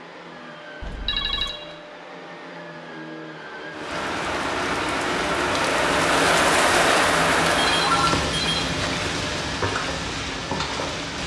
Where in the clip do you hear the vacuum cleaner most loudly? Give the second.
7 s.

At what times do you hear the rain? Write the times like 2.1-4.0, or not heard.
3.7-11.2.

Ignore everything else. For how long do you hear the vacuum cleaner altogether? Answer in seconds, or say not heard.
11 s.